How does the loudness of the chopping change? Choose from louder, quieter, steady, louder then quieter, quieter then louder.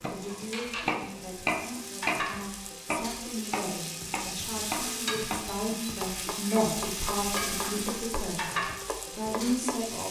quieter.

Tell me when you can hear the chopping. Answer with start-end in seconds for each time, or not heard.
0.0-9.8.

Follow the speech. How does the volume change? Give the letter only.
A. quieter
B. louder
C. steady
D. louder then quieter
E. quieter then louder
B.